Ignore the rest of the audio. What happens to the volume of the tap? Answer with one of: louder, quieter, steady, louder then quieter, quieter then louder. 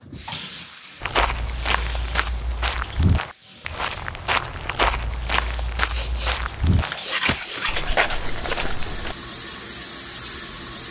quieter then louder.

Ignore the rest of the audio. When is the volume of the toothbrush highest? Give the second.
7 s.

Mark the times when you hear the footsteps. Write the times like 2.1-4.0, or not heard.
1.0-9.2.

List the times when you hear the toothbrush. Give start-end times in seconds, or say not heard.
6.8-8.8.